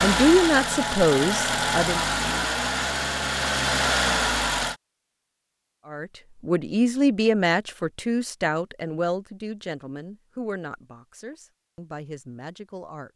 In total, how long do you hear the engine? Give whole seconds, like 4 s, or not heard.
5 s.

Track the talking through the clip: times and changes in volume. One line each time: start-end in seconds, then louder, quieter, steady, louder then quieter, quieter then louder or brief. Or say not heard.
0.0-2.1 brief
5.8-13.1 quieter.